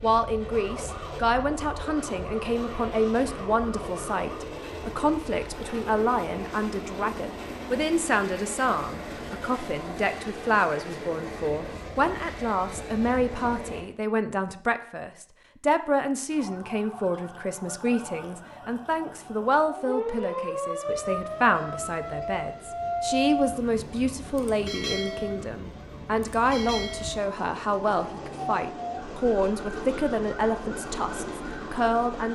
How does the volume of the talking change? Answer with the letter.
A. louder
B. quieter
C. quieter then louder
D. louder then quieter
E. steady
E.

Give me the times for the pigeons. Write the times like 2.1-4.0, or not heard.
not heard.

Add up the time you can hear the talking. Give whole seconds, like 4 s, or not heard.
32 s.